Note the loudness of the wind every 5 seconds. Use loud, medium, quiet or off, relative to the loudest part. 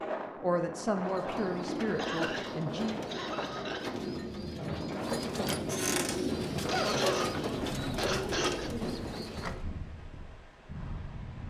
loud, loud, medium.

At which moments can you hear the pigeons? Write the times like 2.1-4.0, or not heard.
0.9-9.6.